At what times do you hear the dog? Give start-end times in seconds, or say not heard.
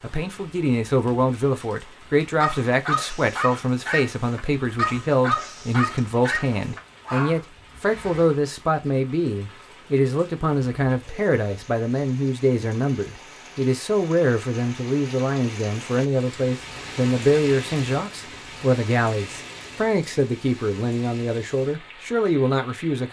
2.4-7.4.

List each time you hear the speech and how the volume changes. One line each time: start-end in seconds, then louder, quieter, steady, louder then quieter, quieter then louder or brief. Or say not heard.
0.0-23.0 steady.